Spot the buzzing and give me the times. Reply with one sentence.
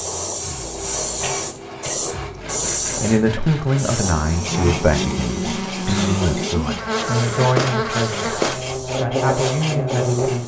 You can hear the buzzing from 4.0 to 10.4 s.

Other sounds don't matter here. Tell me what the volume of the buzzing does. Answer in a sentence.
The volume of the buzzing stays about the same.